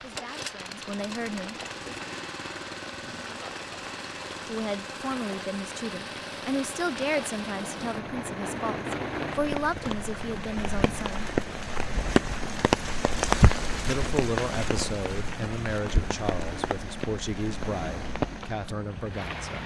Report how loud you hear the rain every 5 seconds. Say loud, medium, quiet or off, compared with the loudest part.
quiet, medium, loud, medium.